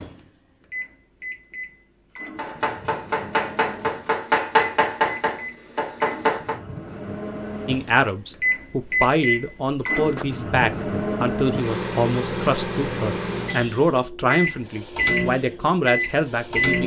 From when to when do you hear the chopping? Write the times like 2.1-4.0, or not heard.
2.4-6.6.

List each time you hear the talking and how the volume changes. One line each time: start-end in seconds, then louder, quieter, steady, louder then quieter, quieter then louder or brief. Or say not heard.
7.7-16.8 steady.